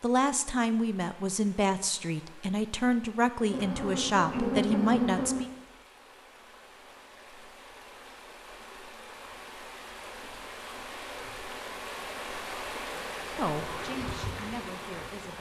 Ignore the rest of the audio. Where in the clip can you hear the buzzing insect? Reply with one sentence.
The buzzing insect can be heard from 3.4 to 5.5 s and from 13.2 to 15.1 s.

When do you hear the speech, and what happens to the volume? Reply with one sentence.
The speech can be heard from 0.0 to 5.5 s, at a steady volume; and briefly from 13.3 to 15.3 s.